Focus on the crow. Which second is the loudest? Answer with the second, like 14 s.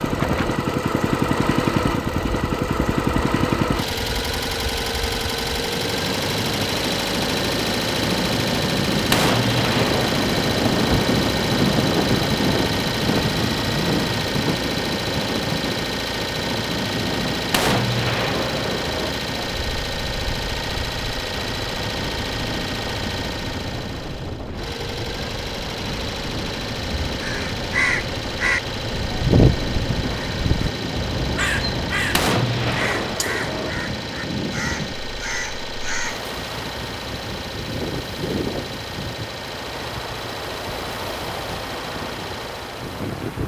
29 s.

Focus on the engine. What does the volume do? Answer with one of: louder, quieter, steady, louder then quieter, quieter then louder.
quieter.